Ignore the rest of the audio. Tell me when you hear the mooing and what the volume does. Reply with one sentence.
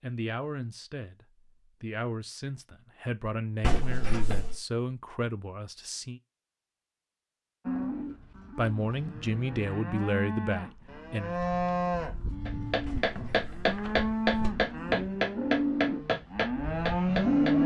The mooing can be heard from 7.7 to 17.6 s, getting louder.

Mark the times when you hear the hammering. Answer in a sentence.
You can hear the hammering from 12.4 to 17.6 s.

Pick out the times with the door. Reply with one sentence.
You can hear the door from 3.6 to 4.5 s and from 12.8 to 14.5 s.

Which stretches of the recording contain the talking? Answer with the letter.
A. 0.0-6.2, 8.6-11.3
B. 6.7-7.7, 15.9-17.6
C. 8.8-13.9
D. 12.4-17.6
A.